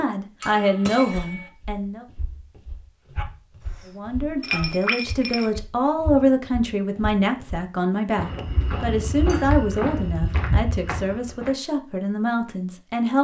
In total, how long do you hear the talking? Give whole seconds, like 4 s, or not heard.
11 s.